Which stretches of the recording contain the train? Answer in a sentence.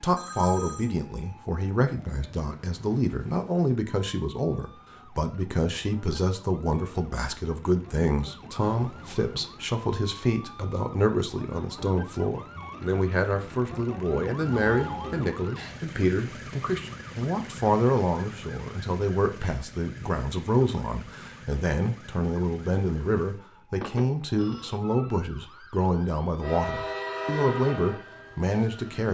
You can hear the train from 26.4 to 29.0 s.